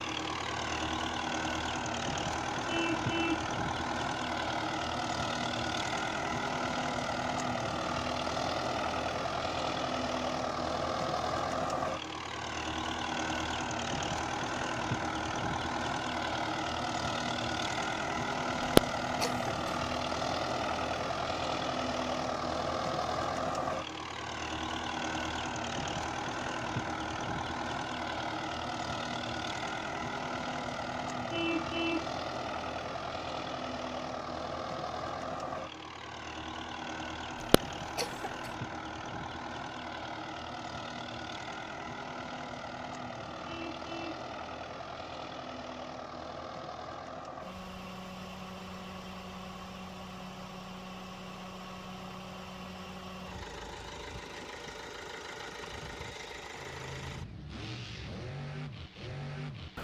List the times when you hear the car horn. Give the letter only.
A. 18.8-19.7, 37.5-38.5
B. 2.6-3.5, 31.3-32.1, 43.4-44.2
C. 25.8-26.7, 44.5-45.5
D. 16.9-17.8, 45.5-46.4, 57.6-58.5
B.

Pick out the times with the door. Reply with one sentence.
The door can't be heard in this clip.